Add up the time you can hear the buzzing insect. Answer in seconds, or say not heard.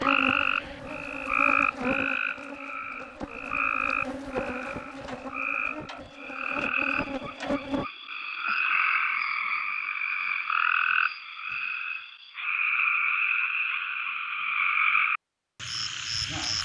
8 s.